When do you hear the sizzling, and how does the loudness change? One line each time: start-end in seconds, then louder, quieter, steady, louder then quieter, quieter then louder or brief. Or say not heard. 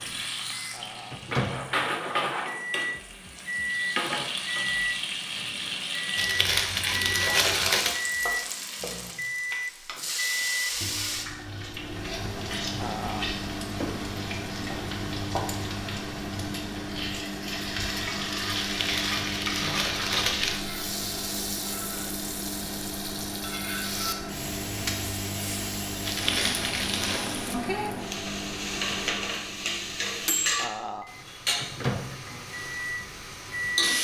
0.0-34.0 steady.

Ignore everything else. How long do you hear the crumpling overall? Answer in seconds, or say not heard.
5 s.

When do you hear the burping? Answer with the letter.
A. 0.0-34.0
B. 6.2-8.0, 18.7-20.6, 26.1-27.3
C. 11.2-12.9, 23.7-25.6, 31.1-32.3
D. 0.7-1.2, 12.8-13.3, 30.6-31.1
D.